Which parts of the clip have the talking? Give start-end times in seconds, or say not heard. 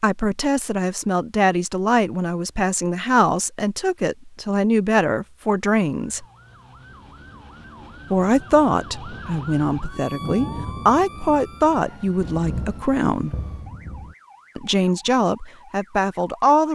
0.0-6.2, 8.1-13.3, 14.6-16.7.